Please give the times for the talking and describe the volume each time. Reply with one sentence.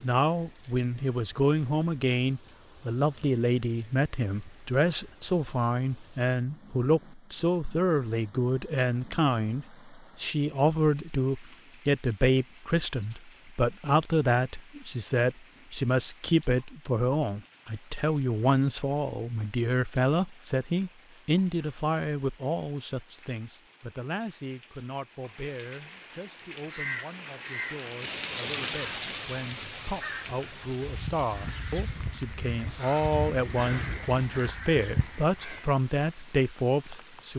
You can hear the talking from 0.0 to 37.3 s, getting quieter then louder.